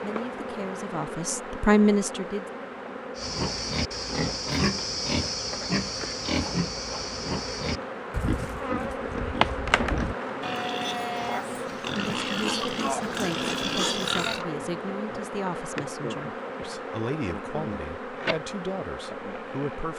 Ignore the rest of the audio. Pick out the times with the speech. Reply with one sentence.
You can hear the speech from 0.0 to 2.5 s and from 11.9 to 19.9 s.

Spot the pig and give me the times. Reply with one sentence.
You can hear the pig from 3.1 to 14.4 s.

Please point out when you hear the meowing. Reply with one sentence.
The meowing can't be heard in this clip.